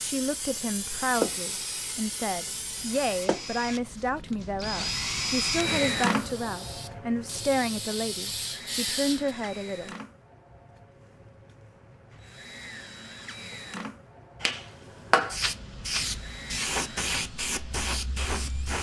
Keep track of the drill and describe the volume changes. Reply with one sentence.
The volume of the drill goes up, then down.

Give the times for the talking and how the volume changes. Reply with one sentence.
The talking can be heard from 0.0 to 9.9 s, at a steady volume.